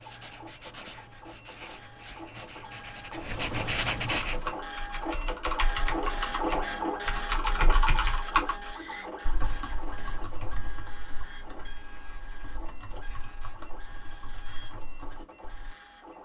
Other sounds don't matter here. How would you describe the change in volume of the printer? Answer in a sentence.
The volume of the printer goes up, then down.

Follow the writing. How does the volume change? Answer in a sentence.
The loudness of the writing goes up.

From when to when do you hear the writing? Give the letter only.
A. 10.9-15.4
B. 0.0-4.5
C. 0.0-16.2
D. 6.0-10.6
B.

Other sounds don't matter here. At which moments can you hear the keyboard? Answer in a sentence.
You can hear the keyboard from 4.2 to 15.8 s.